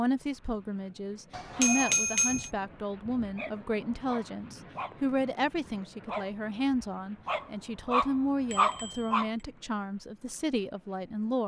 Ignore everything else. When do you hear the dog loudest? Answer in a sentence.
The volume of the dog peaks at 9 seconds.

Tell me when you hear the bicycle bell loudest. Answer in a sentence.
The volume of the bicycle bell peaks at 2 seconds.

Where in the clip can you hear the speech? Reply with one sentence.
You can hear the speech from 0.0 to 11.4 s.